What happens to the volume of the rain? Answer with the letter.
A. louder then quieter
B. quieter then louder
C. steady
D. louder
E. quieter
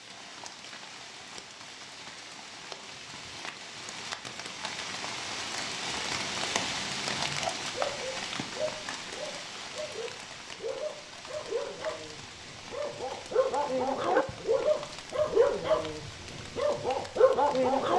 A.